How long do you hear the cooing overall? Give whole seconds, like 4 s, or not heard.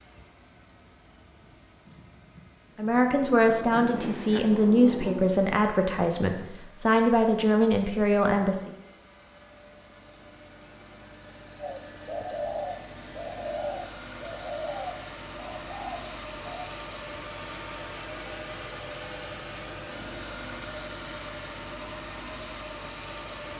5 s.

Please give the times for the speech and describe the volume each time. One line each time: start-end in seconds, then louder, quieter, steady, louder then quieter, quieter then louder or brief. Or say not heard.
2.8-8.7 steady.